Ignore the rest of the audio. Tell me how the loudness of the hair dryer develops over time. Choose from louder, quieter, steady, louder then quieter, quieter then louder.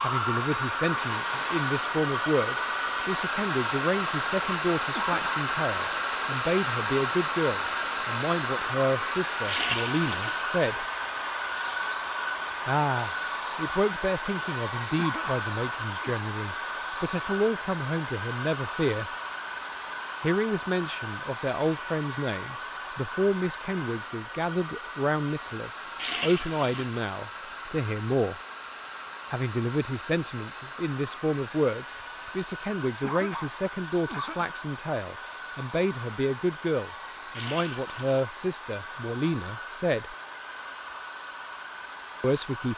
quieter.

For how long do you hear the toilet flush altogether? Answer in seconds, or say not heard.
3 s.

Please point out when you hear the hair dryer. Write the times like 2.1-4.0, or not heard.
0.0-42.7.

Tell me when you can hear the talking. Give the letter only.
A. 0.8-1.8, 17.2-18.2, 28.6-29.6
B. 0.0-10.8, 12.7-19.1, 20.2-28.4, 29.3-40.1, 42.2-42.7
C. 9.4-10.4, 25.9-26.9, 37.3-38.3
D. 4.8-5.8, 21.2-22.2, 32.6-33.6
B.